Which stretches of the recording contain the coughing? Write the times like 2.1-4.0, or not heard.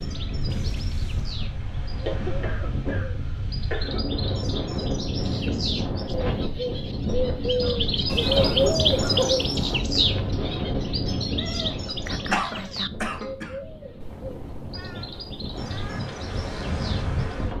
2.0-4.0, 7.6-9.4, 12.3-13.5.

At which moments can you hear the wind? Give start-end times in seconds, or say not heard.
0.0-17.5.